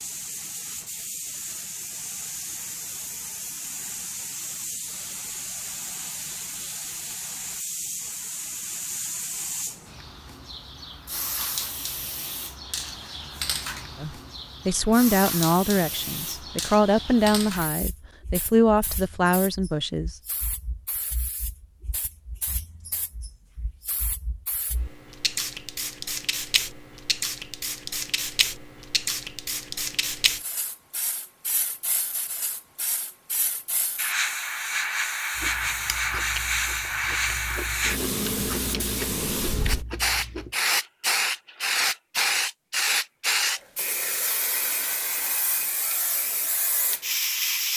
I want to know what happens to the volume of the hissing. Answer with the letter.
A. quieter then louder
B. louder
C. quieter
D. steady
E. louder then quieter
B.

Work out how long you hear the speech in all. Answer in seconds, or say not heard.
6 s.